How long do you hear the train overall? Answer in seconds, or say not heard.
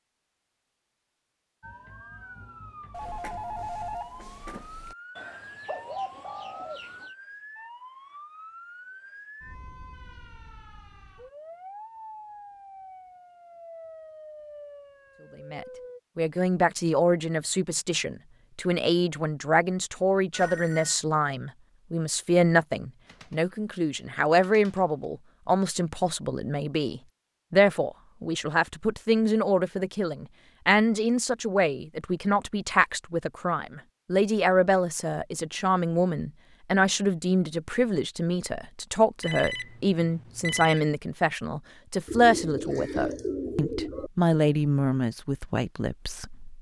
not heard.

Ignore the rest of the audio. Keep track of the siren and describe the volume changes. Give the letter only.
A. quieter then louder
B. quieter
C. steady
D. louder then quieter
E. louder
C.